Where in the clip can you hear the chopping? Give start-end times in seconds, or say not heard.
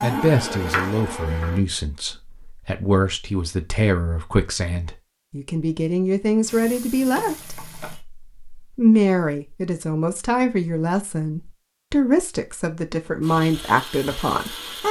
0.0-1.6, 13.3-14.8.